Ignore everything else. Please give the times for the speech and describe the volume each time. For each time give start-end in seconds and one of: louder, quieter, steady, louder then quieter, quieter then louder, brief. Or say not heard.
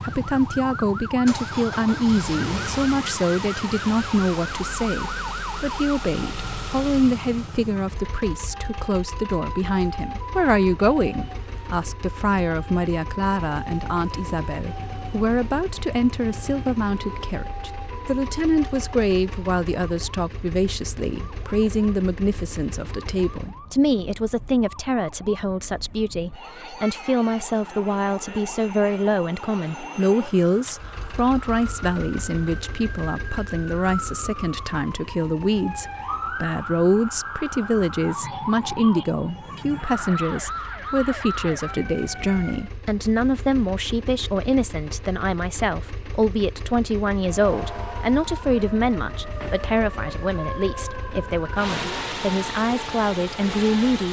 0.0-54.0 steady.